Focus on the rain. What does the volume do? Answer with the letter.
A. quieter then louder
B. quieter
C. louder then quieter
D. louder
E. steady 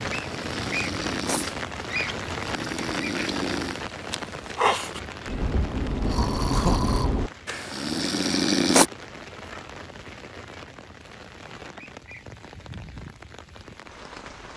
B.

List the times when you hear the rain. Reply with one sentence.
The rain can be heard from 0.0 to 14.5 s.